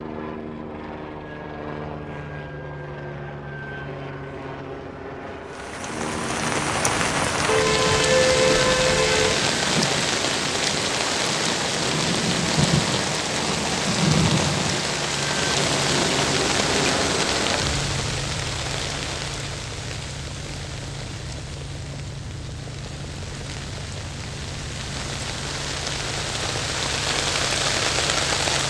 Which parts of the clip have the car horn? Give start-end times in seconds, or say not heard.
7.5-9.4.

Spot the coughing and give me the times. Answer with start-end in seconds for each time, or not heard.
not heard.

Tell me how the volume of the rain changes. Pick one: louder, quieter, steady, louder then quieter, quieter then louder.
quieter then louder.